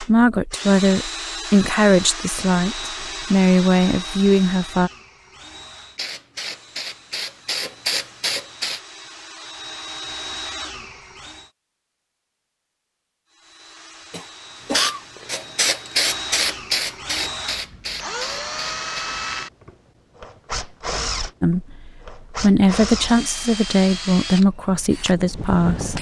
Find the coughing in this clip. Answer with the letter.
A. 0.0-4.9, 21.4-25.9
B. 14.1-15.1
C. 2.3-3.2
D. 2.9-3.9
B.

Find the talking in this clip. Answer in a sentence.
You can hear the talking from 0.0 to 4.9 s and from 21.4 to 25.9 s.